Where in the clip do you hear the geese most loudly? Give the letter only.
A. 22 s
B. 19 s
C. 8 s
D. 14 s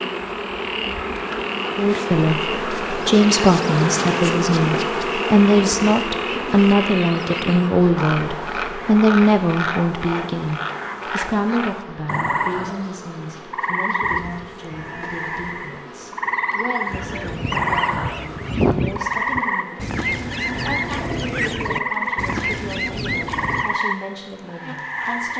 B.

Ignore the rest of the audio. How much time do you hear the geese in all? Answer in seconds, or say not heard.
7 s.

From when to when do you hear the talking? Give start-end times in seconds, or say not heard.
1.8-25.3.